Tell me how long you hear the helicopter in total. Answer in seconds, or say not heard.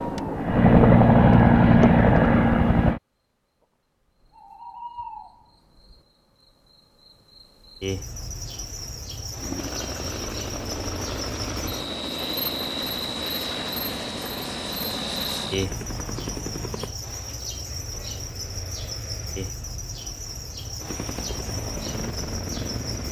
13 s.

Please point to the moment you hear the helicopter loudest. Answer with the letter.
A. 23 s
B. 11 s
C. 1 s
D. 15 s
C.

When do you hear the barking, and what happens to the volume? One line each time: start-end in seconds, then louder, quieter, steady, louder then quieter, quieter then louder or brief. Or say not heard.
not heard.